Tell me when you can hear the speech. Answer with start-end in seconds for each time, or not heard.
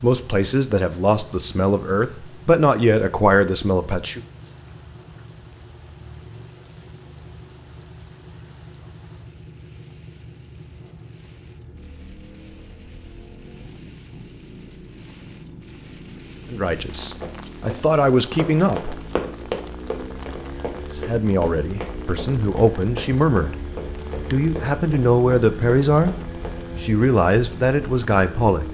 0.0-4.2, 16.5-18.9, 20.9-23.6, 24.1-26.1, 26.8-28.6.